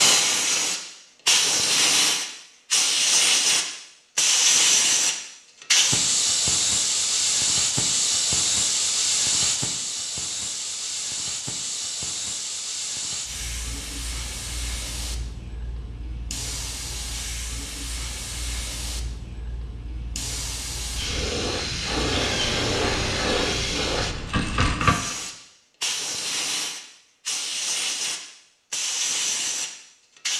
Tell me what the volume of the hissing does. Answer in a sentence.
The volume of the hissing goes down, then up.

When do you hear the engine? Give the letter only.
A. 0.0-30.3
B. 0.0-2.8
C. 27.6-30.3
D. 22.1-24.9
D.